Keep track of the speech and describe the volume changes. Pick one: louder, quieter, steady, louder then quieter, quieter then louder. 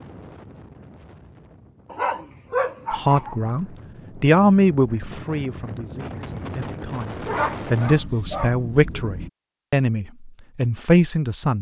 quieter then louder.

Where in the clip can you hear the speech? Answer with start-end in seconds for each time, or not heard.
2.9-11.5.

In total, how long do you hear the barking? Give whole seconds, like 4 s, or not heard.
3 s.